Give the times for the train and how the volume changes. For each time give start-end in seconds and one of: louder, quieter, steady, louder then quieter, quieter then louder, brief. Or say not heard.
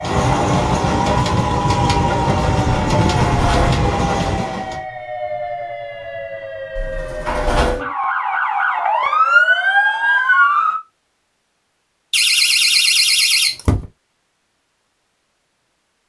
0.0-4.8 steady.